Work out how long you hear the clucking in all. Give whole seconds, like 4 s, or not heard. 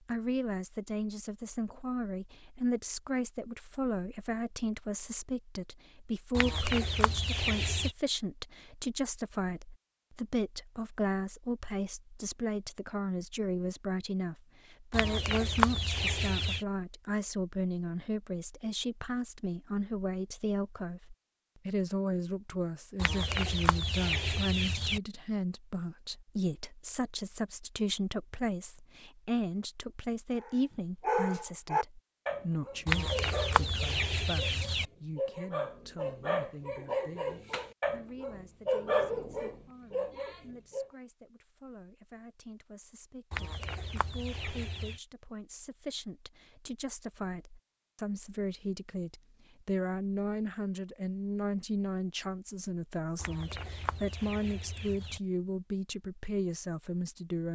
11 s.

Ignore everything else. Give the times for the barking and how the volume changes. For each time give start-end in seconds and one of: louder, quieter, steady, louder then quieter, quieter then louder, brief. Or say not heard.
30.4-40.9 quieter then louder.